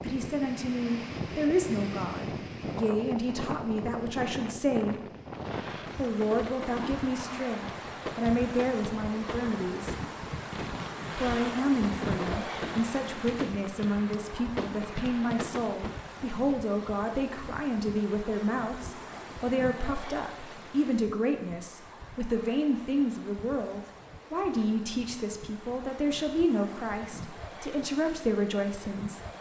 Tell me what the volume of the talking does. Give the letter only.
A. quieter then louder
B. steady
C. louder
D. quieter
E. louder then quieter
B.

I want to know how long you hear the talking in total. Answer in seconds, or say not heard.
27 s.